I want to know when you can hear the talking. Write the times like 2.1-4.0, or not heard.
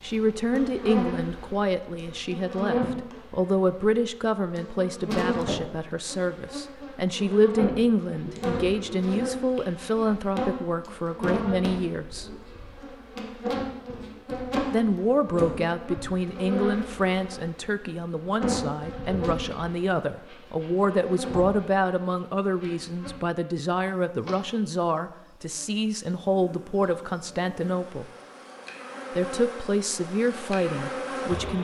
0.0-12.3, 14.7-28.1, 29.1-31.5.